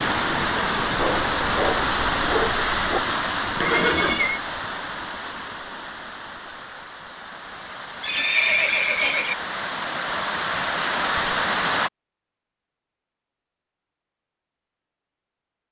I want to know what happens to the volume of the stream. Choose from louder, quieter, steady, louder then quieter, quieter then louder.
quieter then louder.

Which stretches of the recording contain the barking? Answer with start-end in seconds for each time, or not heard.
0.9-3.0.